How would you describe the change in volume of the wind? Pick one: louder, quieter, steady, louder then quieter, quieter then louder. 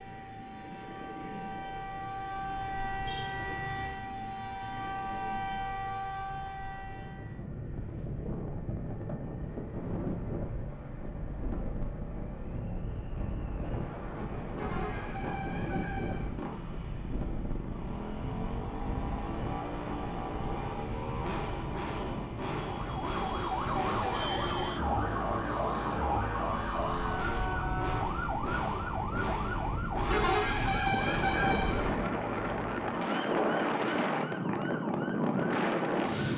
louder.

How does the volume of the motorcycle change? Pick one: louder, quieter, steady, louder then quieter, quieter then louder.
louder.